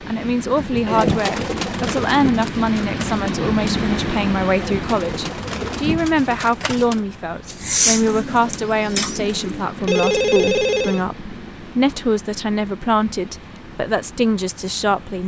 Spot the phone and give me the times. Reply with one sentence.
The phone can be heard from 9.8 to 11.1 s.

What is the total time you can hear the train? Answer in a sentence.
You can hear the train for 15 seconds altogether.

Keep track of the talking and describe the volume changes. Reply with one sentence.
The loudness of the talking stays about the same.